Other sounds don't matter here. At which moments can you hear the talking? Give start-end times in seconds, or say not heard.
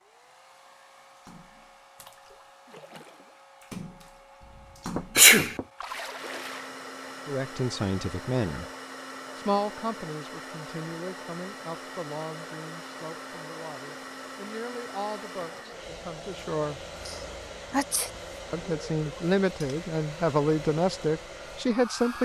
7.2-8.7, 9.3-16.9, 18.5-22.2.